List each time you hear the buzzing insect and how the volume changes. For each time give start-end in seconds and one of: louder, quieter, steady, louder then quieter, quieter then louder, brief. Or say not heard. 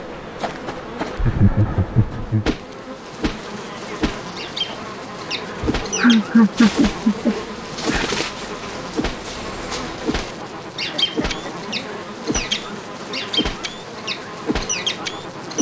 0.0-15.5 steady.